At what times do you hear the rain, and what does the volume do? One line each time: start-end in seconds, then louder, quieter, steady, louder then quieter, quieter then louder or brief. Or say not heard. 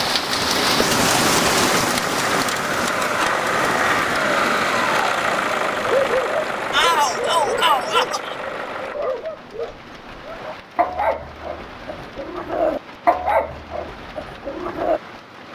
0.0-15.5 quieter.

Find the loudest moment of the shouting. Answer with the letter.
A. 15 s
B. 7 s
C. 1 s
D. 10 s
B.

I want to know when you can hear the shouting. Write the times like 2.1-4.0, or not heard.
6.7-8.3.